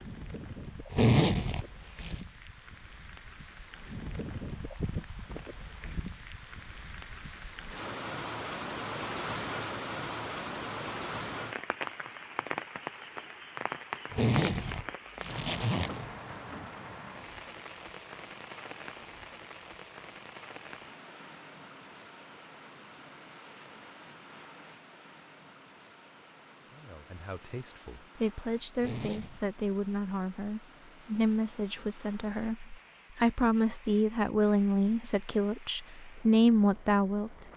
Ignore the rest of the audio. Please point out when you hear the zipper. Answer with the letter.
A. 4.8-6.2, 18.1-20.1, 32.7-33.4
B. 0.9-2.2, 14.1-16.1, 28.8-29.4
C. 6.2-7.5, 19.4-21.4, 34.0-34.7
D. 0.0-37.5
B.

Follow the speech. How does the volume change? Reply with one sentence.
The loudness of the speech goes up.